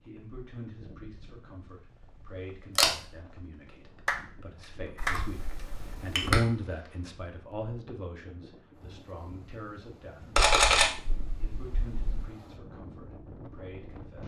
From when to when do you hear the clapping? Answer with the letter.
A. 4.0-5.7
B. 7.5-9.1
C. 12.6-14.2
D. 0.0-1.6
A.